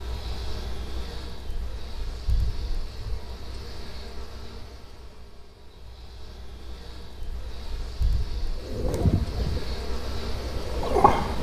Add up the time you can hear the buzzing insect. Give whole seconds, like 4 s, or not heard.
11 s.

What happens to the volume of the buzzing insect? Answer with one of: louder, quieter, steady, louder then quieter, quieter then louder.
quieter then louder.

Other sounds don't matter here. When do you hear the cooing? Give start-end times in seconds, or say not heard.
8.6-11.3.